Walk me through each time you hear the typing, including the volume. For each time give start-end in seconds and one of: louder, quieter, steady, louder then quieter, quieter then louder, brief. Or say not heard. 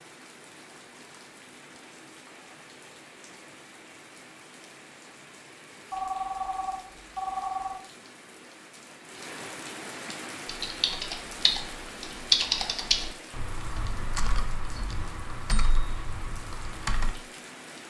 10.4-17.1 louder then quieter.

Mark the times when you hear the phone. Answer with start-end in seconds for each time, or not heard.
5.9-7.8.